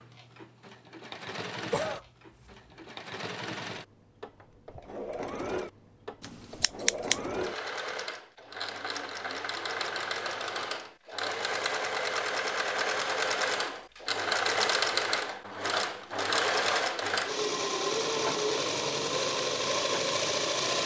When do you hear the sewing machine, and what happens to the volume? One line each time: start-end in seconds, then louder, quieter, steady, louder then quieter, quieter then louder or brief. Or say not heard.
0.0-20.8 louder.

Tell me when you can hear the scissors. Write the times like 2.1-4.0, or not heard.
6.2-7.2.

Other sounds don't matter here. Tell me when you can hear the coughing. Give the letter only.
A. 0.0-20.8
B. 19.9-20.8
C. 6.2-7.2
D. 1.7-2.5
D.